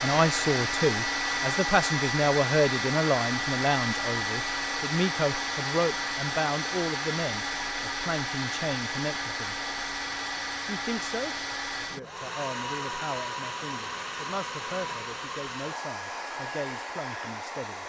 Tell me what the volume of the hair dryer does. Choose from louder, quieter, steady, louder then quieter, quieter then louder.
quieter.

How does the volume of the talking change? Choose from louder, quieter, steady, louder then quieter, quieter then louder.
quieter.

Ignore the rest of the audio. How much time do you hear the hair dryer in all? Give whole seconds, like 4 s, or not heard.
18 s.